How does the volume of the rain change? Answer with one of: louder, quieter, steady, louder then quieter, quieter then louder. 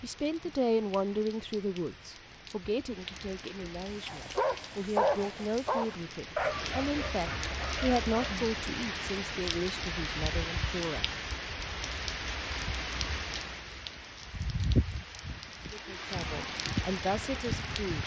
louder.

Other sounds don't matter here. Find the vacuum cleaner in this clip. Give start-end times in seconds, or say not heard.
not heard.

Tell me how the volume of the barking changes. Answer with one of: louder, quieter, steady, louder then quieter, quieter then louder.
quieter.